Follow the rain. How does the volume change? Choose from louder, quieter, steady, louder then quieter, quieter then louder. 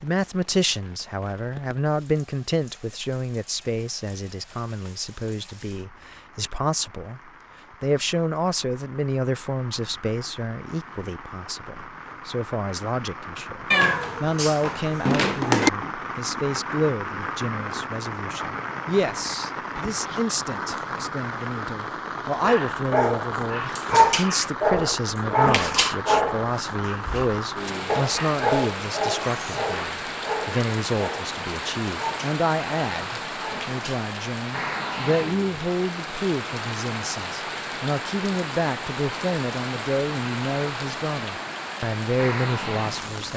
louder.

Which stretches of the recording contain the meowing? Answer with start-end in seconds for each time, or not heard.
13.7-15.7.